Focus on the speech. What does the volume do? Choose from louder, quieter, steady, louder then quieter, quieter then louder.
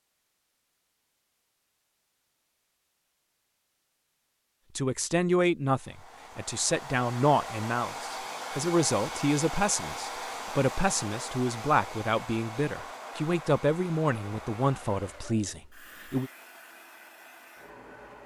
steady.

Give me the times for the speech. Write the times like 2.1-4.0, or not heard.
4.8-16.3.